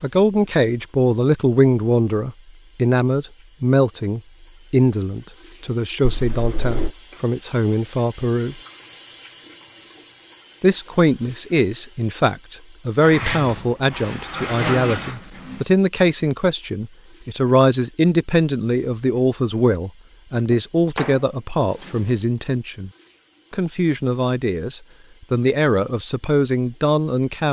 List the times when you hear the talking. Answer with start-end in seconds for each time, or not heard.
0.0-8.6, 10.6-22.9, 23.5-27.4.